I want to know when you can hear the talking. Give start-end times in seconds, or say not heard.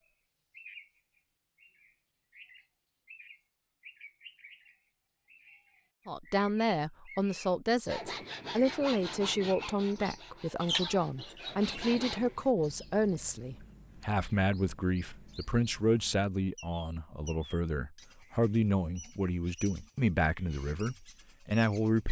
6.0-22.0.